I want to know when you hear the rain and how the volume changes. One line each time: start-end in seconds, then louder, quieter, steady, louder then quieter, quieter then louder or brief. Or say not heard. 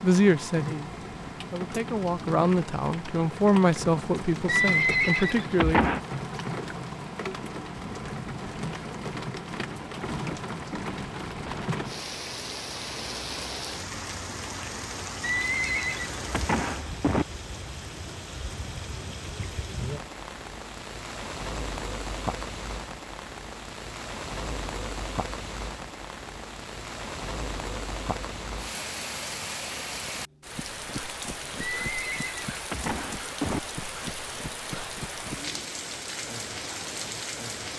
0.0-37.7 steady.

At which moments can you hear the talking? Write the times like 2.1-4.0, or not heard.
0.0-6.0.